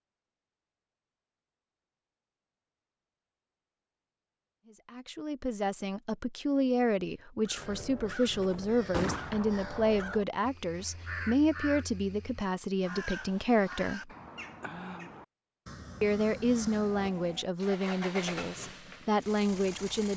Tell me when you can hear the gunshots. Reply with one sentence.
You can hear the gunshots from 8.9 to 10.2 s.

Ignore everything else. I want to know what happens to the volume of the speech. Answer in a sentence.
The volume of the speech stays about the same.